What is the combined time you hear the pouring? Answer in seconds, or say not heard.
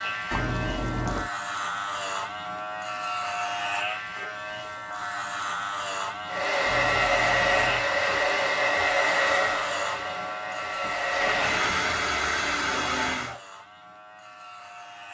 4 s.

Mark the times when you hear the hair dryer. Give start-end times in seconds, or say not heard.
6.2-13.4.